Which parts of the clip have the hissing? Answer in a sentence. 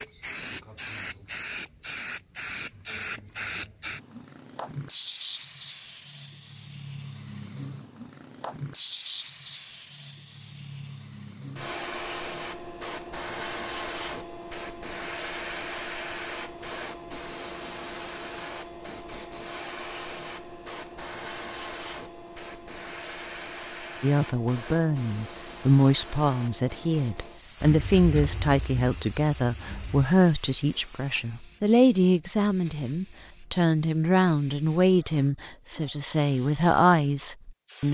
You can hear the hissing from 0.0 to 37.9 s.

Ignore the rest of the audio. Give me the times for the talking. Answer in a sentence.
You can hear the talking from 24.0 to 37.9 s.